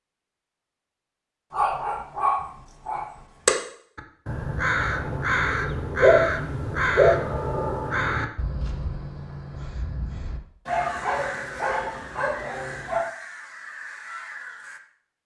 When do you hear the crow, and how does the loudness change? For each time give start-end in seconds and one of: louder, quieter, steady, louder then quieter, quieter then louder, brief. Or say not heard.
4.0-14.8 quieter.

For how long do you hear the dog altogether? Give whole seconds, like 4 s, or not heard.
6 s.